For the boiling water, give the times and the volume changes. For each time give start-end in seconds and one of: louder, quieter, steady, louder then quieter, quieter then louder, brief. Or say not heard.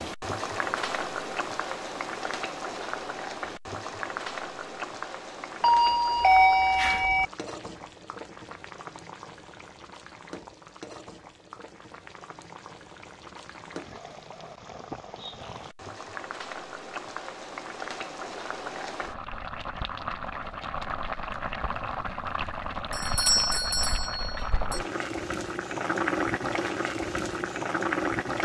0.0-28.4 quieter then louder.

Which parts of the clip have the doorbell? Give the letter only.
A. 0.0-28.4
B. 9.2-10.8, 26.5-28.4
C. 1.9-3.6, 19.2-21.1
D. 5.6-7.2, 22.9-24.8
D.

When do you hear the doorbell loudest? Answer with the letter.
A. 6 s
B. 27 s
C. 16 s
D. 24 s
A.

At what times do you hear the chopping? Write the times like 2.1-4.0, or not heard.
not heard.